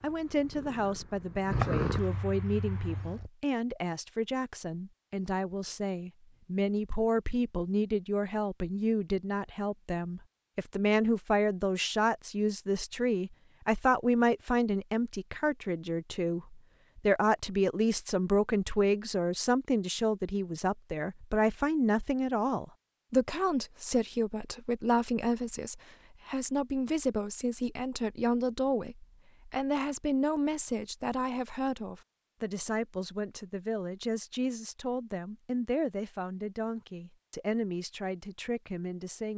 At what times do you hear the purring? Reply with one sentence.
The purring can be heard from 0.0 to 3.3 s.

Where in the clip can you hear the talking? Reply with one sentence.
The talking can be heard from 0.0 to 39.3 s.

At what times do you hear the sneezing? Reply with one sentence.
The sneezing can't be heard in this clip.